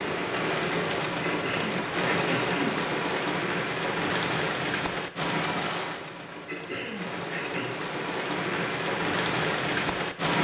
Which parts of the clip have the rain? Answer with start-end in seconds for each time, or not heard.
0.0-10.3.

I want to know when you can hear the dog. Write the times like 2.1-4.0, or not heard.
not heard.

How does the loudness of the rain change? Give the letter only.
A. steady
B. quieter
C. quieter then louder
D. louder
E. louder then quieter
C.